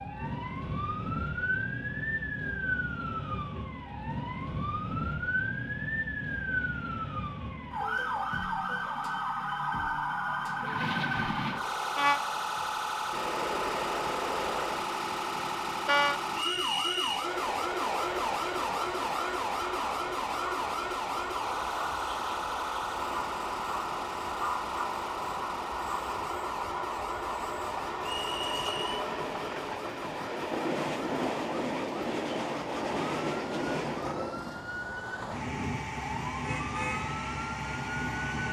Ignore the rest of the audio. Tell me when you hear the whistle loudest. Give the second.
17 s.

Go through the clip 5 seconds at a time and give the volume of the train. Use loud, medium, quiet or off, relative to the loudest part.
quiet, quiet, loud, loud, loud, loud, loud, loud.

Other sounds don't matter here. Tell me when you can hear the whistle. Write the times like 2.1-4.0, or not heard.
16.4-17.2, 28.1-29.0.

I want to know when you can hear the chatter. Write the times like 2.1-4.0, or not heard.
not heard.